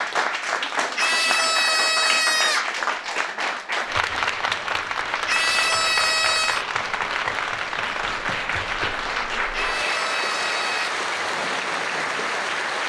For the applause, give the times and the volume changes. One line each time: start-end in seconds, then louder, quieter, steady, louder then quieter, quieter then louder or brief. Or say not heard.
0.0-12.8 steady.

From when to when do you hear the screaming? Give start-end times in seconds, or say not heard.
0.9-2.8, 5.2-6.7, 9.5-10.9.